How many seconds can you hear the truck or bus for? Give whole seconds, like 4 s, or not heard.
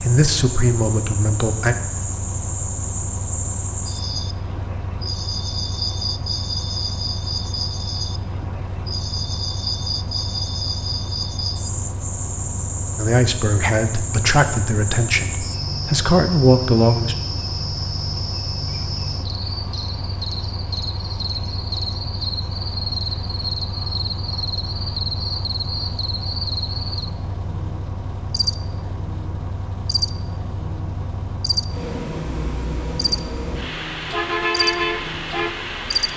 36 s.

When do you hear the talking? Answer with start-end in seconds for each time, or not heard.
0.0-1.8, 12.9-17.1.